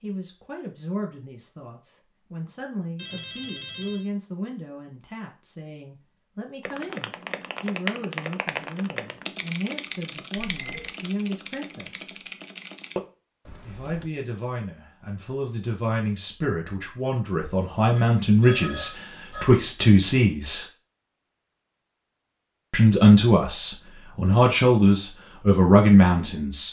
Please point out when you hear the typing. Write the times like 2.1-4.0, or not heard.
6.6-14.1.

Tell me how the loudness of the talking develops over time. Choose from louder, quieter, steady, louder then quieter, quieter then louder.
louder.